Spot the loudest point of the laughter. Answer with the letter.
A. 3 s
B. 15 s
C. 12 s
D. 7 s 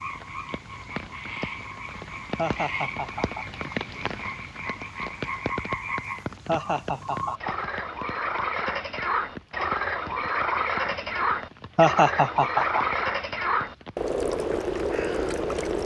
C.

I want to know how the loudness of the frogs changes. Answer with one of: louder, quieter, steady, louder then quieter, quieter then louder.
louder.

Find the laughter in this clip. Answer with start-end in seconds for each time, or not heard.
2.4-3.5, 6.5-7.5, 11.8-12.9.